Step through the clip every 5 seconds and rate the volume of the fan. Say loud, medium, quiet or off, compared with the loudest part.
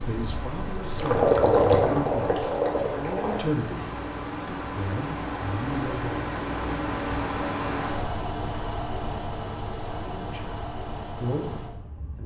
medium, loud, medium.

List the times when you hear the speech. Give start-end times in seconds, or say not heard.
0.1-6.3, 9.8-12.2.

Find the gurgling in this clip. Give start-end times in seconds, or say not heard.
0.0-3.4.